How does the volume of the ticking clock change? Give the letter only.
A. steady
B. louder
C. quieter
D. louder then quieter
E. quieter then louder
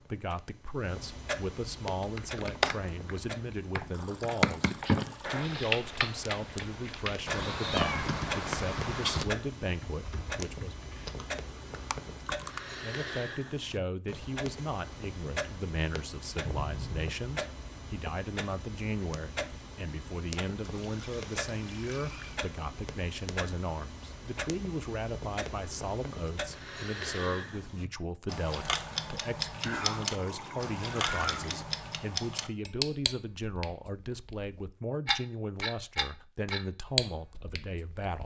B.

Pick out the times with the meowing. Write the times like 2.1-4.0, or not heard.
7.2-9.2, 16.4-17.1, 29.6-31.4.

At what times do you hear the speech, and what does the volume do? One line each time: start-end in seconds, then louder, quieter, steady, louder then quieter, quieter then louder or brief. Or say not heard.
0.1-10.9 steady
12.8-38.2 steady.